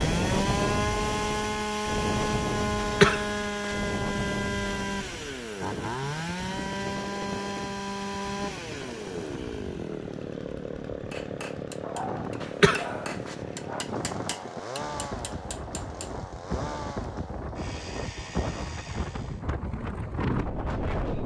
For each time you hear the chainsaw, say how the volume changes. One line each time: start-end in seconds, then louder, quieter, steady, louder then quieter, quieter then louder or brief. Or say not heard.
0.0-19.4 quieter.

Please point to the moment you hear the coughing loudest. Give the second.
3 s.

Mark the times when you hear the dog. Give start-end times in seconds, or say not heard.
11.8-13.8.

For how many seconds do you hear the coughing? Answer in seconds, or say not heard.
2 s.